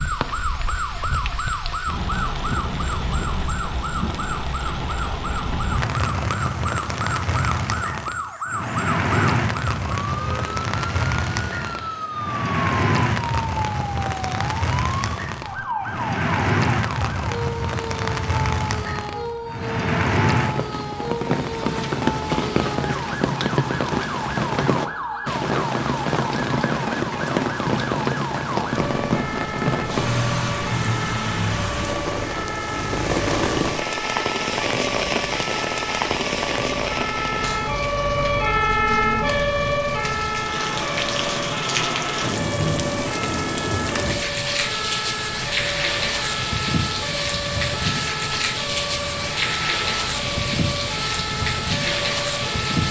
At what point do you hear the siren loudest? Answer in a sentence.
The volume of the siren peaks at 39 seconds.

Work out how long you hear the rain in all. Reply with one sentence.
You can hear the rain for 53 seconds altogether.